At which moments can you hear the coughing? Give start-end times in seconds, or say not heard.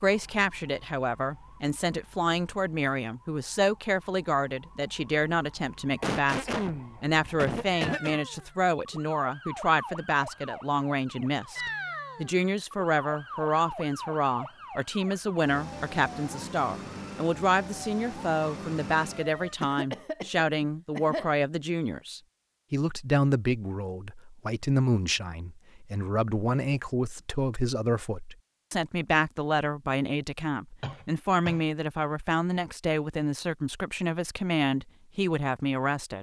6.0-8.2, 19.6-21.3, 30.8-31.6.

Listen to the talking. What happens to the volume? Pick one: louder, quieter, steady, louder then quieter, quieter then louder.
steady.